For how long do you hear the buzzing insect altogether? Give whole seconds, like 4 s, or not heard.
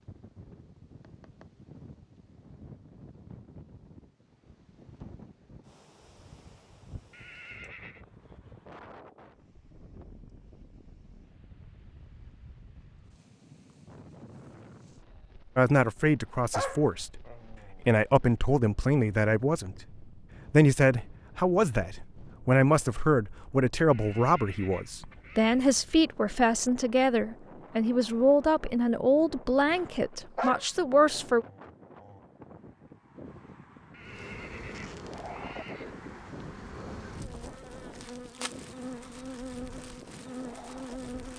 7 s.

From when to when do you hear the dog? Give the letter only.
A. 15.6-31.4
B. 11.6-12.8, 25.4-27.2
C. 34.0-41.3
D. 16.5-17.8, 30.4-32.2
D.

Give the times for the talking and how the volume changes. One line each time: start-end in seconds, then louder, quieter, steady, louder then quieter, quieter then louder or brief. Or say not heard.
15.6-31.4 steady.